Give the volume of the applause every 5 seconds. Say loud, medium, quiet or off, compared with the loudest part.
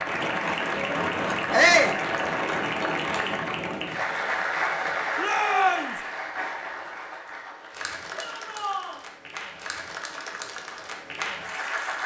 loud, medium, medium.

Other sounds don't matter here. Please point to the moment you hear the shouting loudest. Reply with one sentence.
The volume of the shouting peaks at 2 seconds.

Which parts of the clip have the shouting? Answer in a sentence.
The shouting can be heard from 1.5 to 2.0 s, from 5.2 to 6.0 s and from 8.1 to 9.0 s.